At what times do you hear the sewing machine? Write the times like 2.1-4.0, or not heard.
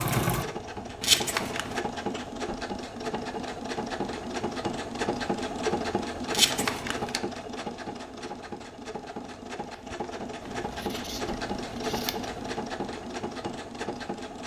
0.0-14.4.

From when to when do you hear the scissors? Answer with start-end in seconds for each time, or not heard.
1.0-1.8, 6.3-7.2, 10.4-12.6.